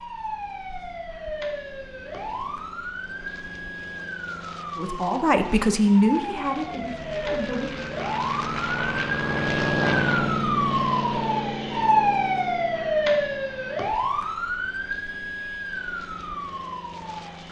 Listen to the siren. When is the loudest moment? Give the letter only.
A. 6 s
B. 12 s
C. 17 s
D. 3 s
B.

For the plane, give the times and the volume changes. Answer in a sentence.
The plane can be heard from 0.0 to 17.4 s, getting louder then quieter.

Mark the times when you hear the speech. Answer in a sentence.
The speech can be heard from 4.8 to 7.7 s.